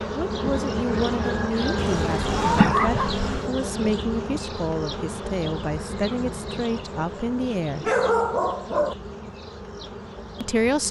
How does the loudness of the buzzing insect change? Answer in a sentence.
The volume of the buzzing insect goes down.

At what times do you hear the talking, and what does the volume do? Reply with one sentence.
The talking can be heard from 0.1 to 7.9 s, at a steady volume; and briefly from 10.4 to 10.8 s.